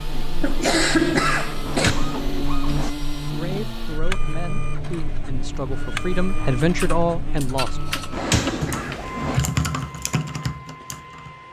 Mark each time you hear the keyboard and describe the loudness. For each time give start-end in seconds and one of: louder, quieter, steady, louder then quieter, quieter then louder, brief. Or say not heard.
6.6-11.4 louder then quieter.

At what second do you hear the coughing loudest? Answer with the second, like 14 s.
1 s.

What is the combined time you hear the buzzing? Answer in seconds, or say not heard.
8 s.